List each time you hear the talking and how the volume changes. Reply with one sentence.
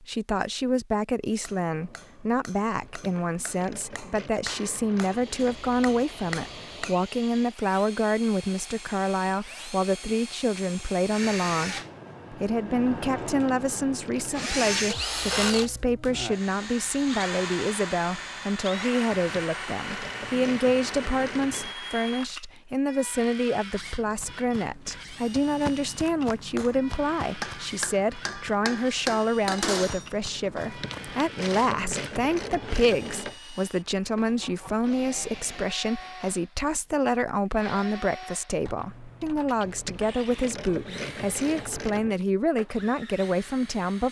The talking can be heard from 0.0 to 44.0 s, at a steady volume.